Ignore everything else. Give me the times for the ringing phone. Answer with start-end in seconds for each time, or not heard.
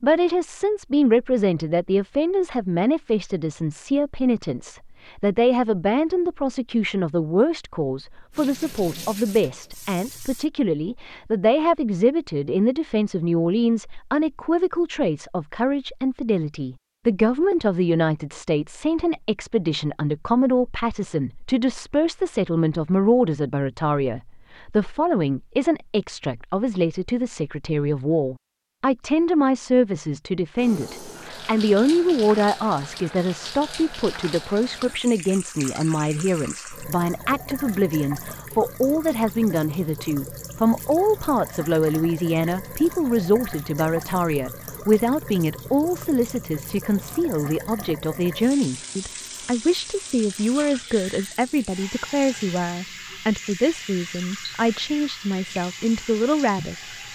not heard.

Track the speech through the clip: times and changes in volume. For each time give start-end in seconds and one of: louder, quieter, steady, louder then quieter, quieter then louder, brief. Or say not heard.
0.0-56.9 steady.